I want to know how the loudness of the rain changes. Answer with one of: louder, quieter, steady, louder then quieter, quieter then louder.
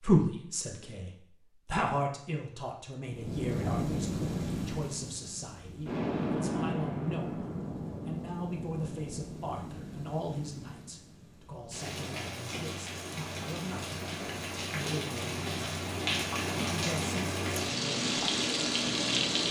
quieter then louder.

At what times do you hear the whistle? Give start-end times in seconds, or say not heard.
not heard.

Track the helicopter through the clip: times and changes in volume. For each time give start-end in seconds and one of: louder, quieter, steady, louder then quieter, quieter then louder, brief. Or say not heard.
not heard.